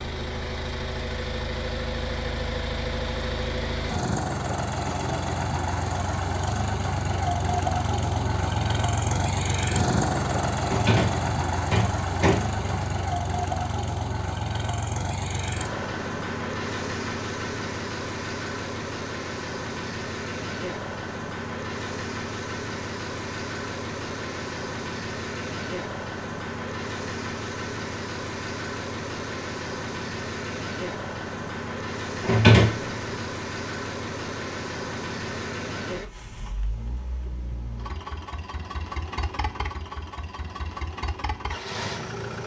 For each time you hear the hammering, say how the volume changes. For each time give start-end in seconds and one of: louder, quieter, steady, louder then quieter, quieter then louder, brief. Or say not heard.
not heard.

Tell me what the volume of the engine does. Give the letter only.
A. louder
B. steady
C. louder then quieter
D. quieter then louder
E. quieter
E.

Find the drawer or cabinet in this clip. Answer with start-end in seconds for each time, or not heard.
10.7-12.9, 32.2-33.2.